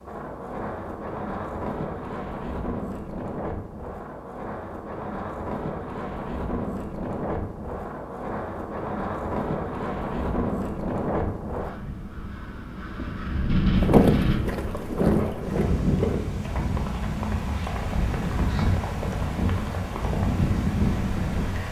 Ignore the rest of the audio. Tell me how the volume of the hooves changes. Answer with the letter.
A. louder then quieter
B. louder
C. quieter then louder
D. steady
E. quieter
E.